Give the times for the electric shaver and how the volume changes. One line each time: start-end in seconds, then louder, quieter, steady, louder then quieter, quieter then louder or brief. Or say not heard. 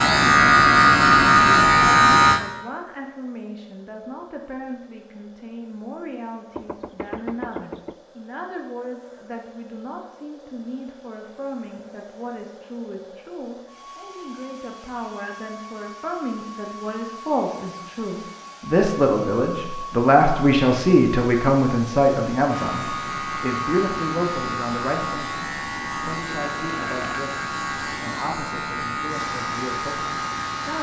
0.0-2.4 brief
22.4-30.7 steady.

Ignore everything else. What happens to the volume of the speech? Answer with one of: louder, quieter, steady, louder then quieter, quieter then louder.
louder then quieter.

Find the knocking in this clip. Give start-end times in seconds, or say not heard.
6.5-8.0.